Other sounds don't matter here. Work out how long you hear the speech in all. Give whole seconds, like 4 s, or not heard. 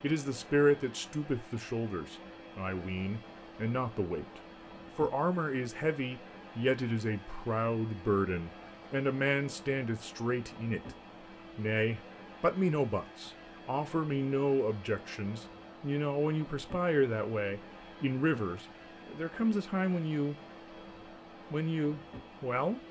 21 s.